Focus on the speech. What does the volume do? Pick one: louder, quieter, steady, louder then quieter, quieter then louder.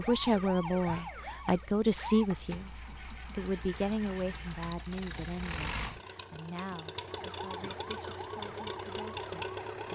quieter.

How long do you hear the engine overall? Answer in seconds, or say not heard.
10 s.